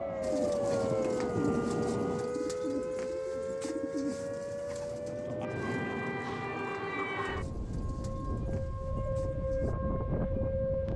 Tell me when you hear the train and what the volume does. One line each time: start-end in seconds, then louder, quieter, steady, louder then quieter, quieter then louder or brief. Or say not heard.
0.0-2.4 brief
3.9-8.1 louder then quieter.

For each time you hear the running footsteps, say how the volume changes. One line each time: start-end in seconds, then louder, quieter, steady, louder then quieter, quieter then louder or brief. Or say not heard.
not heard.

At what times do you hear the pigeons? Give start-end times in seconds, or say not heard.
0.2-9.8.